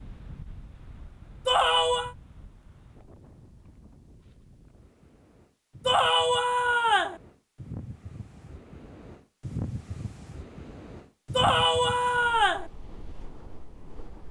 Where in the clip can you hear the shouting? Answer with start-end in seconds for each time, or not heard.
1.4-2.1, 5.8-7.2, 11.3-12.7.